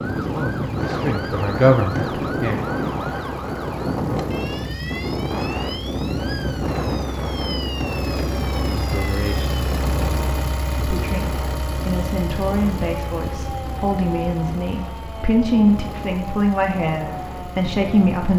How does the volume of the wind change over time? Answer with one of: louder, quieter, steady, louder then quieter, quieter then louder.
quieter.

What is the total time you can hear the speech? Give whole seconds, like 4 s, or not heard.
11 s.